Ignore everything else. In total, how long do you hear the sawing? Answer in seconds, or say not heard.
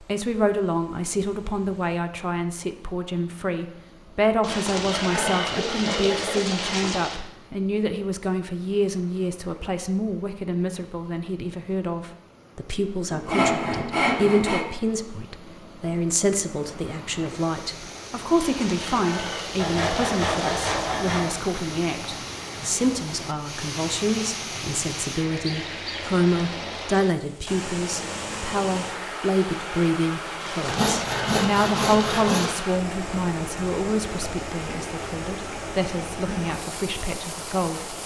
8 s.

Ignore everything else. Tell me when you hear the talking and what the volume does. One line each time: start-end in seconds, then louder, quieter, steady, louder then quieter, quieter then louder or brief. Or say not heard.
0.1-38.0 steady.